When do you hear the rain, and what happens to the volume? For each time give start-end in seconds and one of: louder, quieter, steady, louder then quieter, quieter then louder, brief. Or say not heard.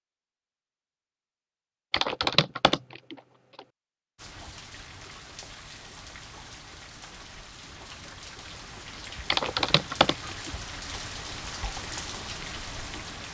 4.2-13.2 louder.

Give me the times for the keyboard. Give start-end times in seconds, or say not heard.
1.9-3.6, 9.3-11.0.